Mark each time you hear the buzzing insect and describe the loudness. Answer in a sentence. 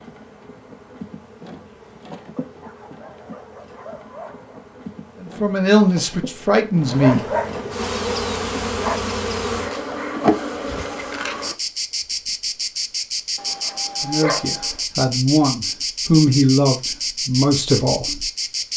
You can hear the buzzing insect from 0.0 to 18.7 s, getting louder.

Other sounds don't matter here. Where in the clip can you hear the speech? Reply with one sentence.
You can hear the speech from 5.2 to 7.3 s and from 14.0 to 18.2 s.